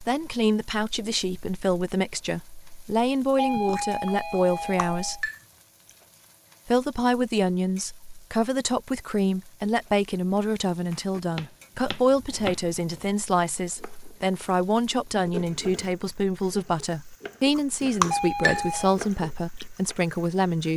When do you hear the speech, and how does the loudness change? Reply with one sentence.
You can hear the speech from 0.0 to 5.3 s, at a steady volume; and from 6.7 to 20.7 s, at a steady volume.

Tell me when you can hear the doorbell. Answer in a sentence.
You can hear the doorbell from 3.4 to 5.2 s and from 18.1 to 18.9 s.